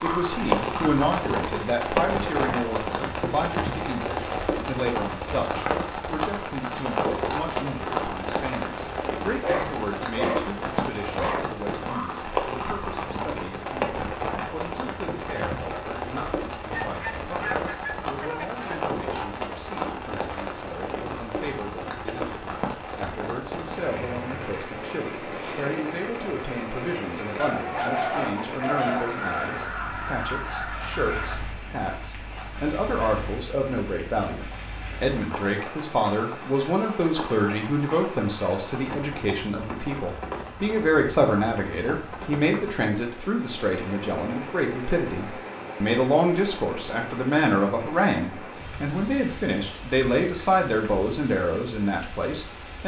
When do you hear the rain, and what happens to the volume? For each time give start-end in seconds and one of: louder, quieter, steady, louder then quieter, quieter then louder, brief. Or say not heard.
0.0-52.8 quieter.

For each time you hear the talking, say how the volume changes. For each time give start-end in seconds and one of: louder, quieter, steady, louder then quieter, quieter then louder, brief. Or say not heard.
0.0-52.8 quieter then louder.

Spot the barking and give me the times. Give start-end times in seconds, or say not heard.
9.4-11.4, 27.4-29.1.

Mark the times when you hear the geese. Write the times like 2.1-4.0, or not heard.
16.7-18.8, 28.9-31.4.